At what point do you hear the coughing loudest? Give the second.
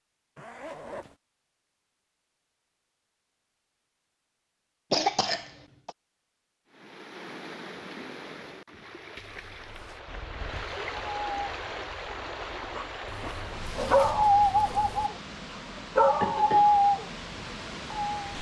5 s.